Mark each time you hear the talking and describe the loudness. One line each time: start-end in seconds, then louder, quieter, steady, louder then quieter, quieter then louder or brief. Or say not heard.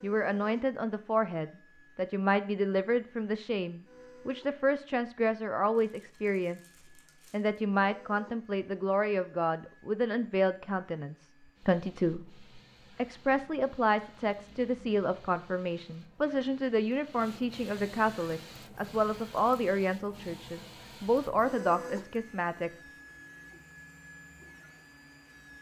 0.0-6.6 steady
7.3-22.7 steady.